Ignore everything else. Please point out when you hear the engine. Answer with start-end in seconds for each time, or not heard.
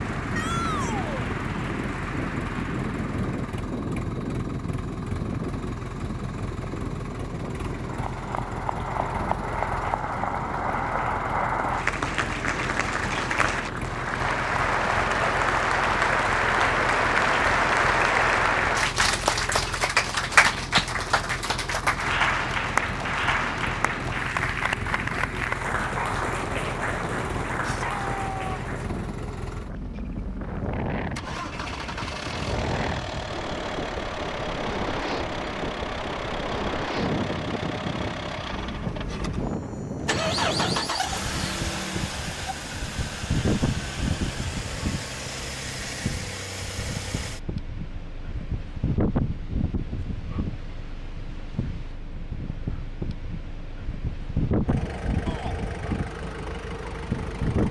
0.1-57.6.